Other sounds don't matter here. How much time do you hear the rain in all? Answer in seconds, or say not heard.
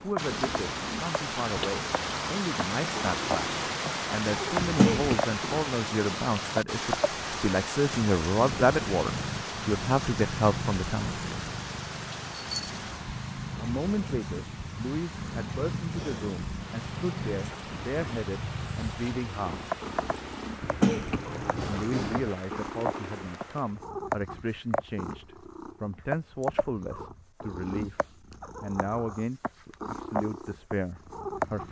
24 s.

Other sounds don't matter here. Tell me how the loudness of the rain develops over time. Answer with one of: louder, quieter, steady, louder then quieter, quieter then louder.
quieter.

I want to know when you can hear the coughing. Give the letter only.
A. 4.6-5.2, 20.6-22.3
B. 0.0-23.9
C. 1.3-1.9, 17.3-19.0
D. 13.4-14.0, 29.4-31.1
A.